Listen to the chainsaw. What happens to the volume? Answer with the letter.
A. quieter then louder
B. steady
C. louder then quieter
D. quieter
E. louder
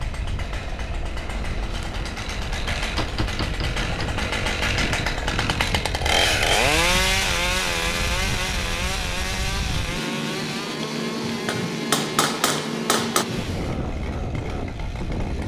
C.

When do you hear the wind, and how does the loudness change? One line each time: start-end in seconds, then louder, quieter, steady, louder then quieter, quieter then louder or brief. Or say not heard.
0.0-15.4 louder.